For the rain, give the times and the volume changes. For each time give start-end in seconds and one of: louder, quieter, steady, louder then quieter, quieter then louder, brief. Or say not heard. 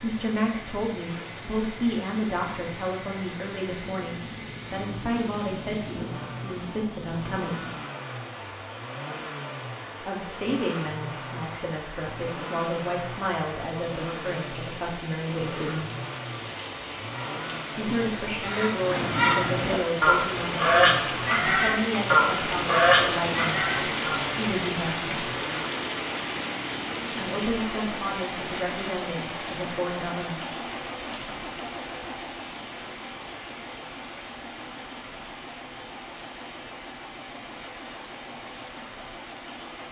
0.0-39.8 louder then quieter.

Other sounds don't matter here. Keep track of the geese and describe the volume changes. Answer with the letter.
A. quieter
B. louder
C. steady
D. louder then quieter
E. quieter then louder
B.